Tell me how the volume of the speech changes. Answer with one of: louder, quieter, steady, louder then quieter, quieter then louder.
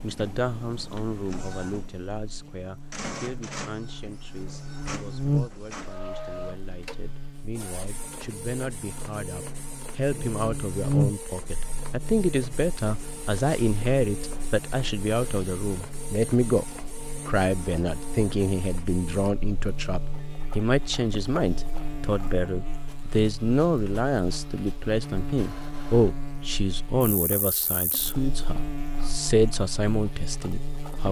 louder.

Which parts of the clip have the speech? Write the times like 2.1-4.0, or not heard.
0.0-31.0.